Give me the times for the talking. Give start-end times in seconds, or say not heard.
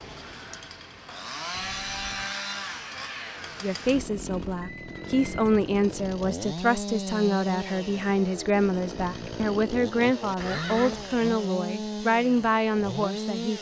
3.6-13.5.